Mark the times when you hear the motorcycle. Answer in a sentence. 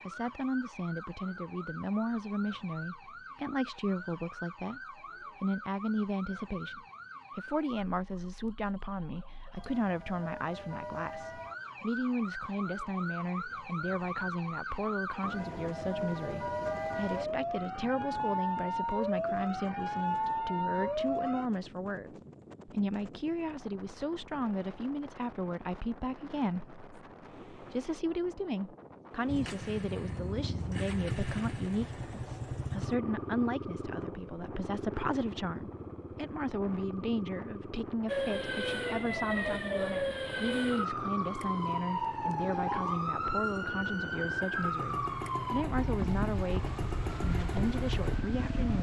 The motorcycle can be heard from 29.2 to 48.7 s.